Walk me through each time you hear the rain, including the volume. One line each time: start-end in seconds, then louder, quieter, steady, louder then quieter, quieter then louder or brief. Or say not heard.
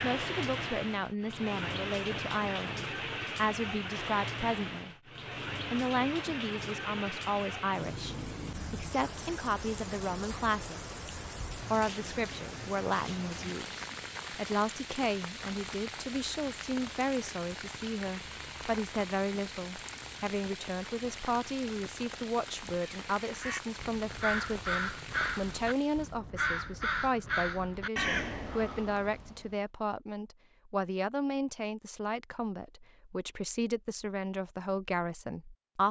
0.0-26.2 quieter.